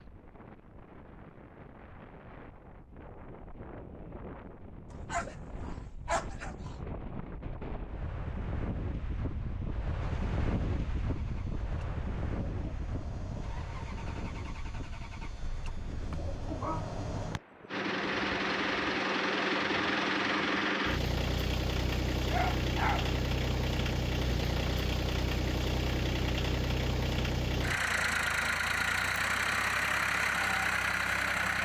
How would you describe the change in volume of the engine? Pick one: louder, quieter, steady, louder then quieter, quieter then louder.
louder.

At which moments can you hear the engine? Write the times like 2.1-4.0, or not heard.
10.0-31.6.